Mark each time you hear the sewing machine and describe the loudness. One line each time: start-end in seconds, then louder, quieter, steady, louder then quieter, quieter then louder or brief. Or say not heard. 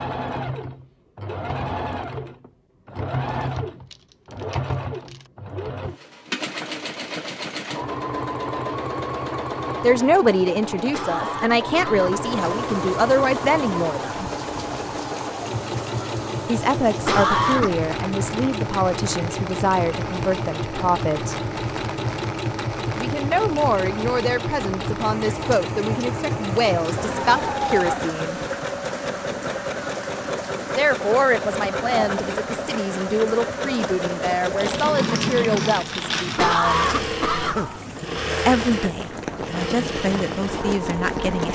0.0-41.5 steady.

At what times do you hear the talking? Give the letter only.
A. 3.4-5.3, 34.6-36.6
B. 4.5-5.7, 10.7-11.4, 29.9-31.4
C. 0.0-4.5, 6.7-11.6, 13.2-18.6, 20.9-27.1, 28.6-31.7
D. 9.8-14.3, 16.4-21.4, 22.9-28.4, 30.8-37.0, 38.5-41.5
D.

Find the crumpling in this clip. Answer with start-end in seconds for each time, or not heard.
3.4-5.3, 34.6-36.6.